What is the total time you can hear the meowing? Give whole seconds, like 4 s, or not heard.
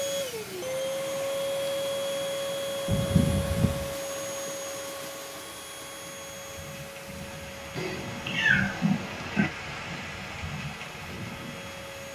3 s.